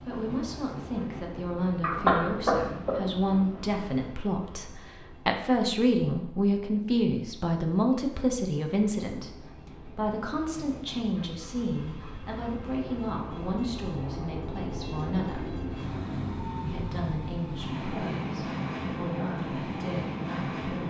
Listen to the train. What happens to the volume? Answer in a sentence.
The loudness of the train goes down, then up.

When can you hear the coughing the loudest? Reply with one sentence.
The volume of the coughing peaks at 2 seconds.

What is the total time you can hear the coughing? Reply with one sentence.
You can hear the coughing for 2 seconds altogether.